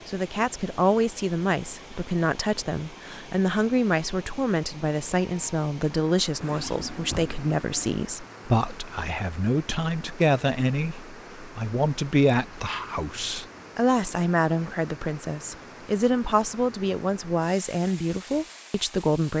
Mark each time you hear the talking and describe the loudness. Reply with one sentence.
The talking can be heard from 0.1 to 19.3 s, at a steady volume.